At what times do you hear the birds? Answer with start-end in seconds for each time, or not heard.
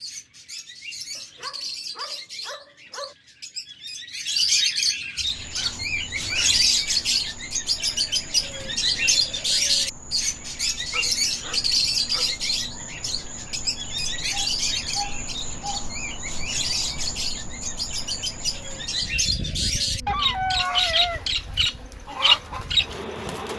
0.0-23.5.